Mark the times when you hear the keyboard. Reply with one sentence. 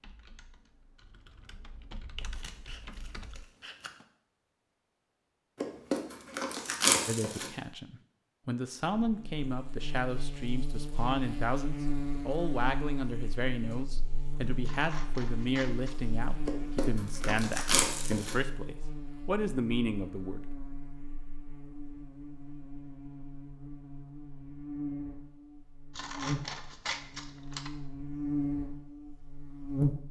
You can hear the keyboard from 0.0 to 3.5 s.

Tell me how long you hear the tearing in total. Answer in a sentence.
You can hear the tearing for 4 seconds altogether.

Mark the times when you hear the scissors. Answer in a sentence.
The scissors can be heard from 2.2 to 4.0 s, from 14.6 to 16.0 s and from 25.9 to 27.7 s.